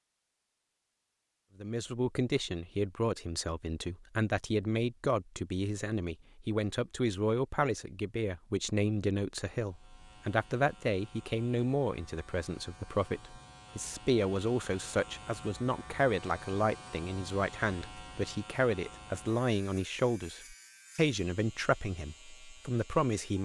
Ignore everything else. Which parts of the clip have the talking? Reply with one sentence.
The talking can be heard from 1.6 to 23.4 s.